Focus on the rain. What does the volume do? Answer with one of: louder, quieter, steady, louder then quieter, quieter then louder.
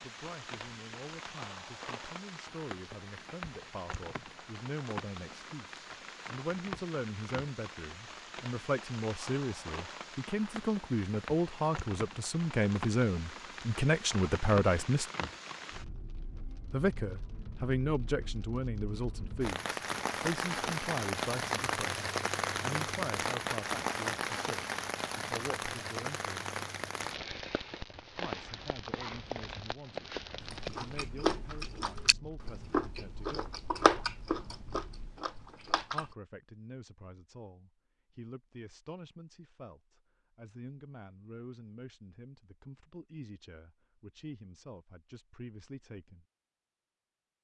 louder then quieter.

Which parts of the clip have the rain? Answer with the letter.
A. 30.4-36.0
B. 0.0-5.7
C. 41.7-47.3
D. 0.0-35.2
D.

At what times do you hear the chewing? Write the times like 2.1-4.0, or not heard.
30.4-36.0.